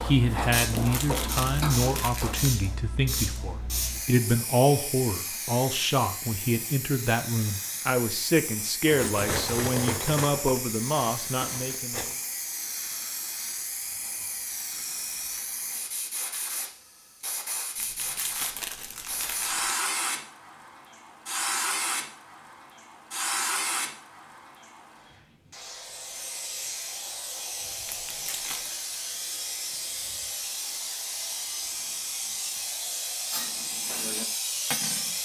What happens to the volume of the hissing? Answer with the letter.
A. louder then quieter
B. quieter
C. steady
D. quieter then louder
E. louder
C.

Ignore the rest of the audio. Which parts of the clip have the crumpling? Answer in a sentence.
The crumpling can be heard from 0.6 to 2.5 s, from 17.8 to 19.8 s and from 27.9 to 28.8 s.